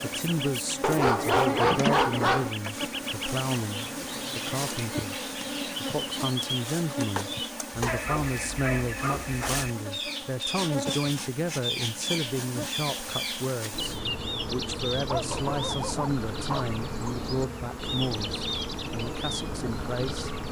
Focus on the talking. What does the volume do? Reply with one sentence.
The volume of the talking stays about the same.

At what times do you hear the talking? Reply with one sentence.
The talking can be heard from 0.0 to 20.3 s.